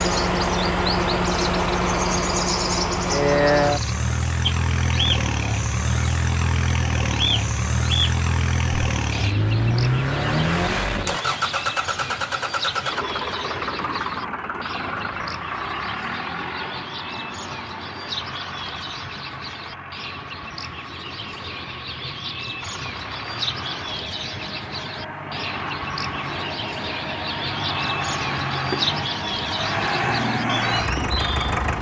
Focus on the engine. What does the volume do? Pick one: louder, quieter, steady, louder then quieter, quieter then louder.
quieter then louder.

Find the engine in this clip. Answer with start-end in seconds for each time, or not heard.
0.0-31.7.